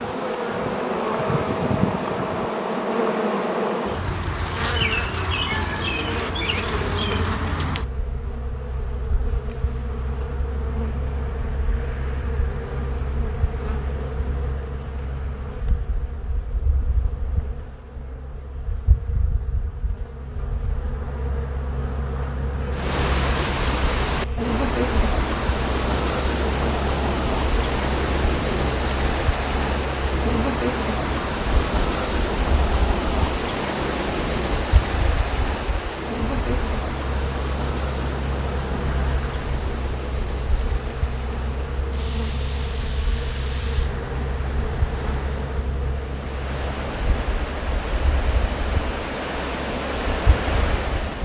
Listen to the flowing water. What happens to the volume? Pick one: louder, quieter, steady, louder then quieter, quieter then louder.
quieter then louder.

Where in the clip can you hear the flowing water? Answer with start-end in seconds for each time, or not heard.
22.7-51.2.